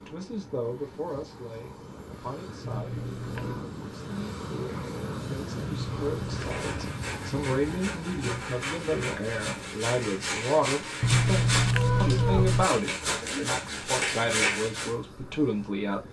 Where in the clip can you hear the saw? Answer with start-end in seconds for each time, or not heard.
6.2-14.9.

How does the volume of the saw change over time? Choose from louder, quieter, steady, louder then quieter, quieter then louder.
louder.